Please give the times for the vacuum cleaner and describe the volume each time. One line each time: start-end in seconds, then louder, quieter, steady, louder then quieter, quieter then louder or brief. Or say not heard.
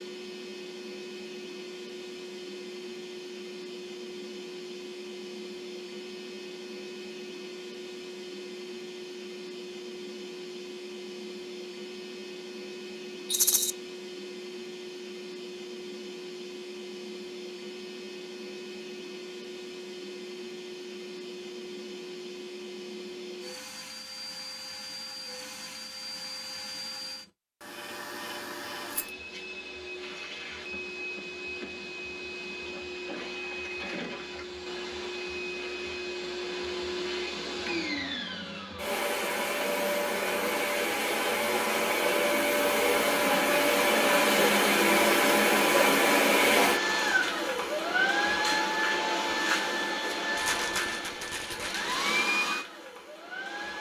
0.0-53.7 louder.